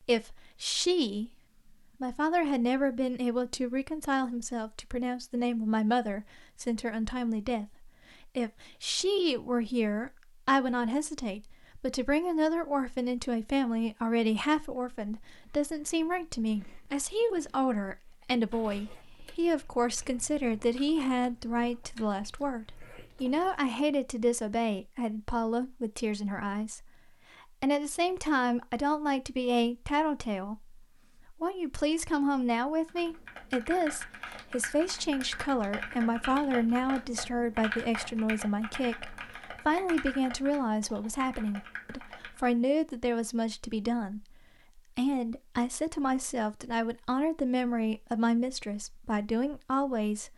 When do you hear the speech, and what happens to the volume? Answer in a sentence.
The speech can be heard briefly from 0.1 to 1.3 s; from 2.0 to 26.9 s, at a steady volume; and from 27.6 to 50.3 s, at a steady volume.